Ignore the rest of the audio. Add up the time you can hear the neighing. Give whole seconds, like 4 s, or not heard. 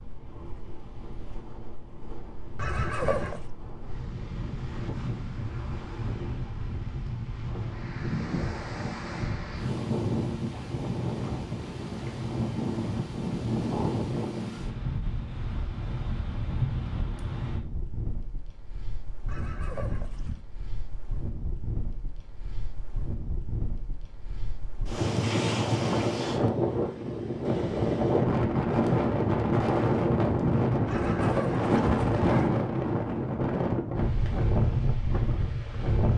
4 s.